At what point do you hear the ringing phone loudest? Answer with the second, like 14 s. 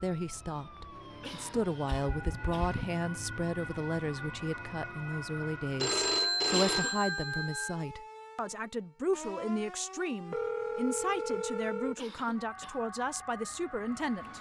6 s.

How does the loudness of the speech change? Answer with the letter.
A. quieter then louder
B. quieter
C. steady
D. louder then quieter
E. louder
C.